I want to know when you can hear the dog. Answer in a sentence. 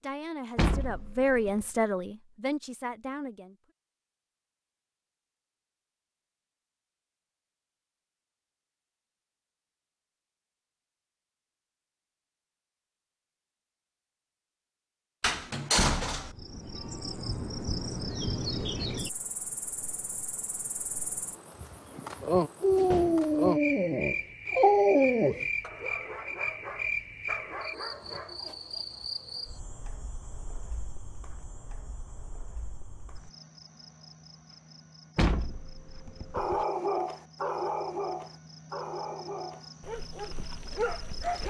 You can hear the dog from 22.6 to 28.6 s and from 36.3 to 41.4 s.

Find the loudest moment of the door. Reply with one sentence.
The volume of the door peaks at 16 seconds.